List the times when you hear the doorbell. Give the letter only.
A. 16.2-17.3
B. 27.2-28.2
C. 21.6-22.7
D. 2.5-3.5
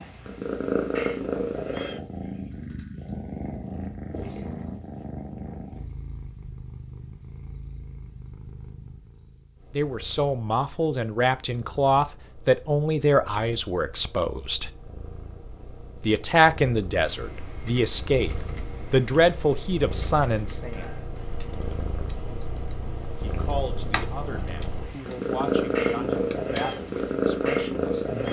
D.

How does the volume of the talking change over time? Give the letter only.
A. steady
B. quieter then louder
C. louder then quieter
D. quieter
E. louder
D.